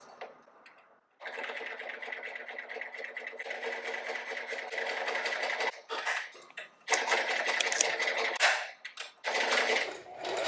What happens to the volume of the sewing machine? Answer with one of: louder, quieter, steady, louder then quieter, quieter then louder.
louder.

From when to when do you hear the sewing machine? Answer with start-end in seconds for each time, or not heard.
0.0-10.4.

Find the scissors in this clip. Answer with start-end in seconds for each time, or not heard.
6.3-7.9.